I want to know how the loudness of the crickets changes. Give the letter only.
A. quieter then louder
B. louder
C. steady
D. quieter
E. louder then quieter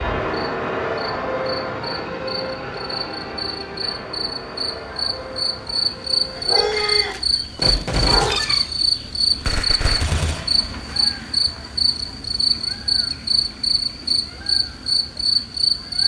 B.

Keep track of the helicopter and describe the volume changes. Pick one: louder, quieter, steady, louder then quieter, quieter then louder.
quieter.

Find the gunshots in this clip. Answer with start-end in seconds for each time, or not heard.
6.7-10.4.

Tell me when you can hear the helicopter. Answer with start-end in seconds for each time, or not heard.
0.0-6.6.